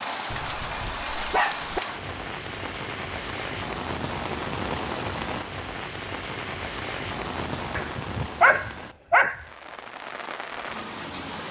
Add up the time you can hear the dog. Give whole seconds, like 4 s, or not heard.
3 s.